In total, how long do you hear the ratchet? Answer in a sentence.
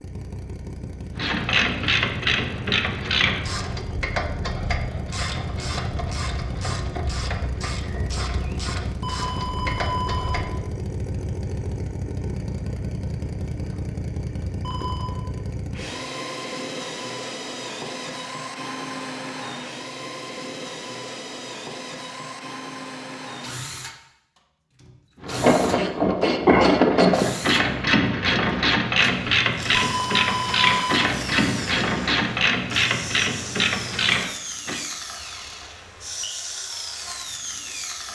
You can hear the ratchet for 19 seconds altogether.